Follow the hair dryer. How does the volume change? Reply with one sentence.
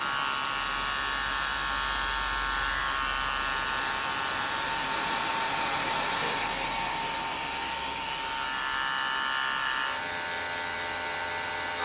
The volume of the hair dryer goes up, then down.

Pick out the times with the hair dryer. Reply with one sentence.
You can hear the hair dryer from 0.0 to 11.7 s.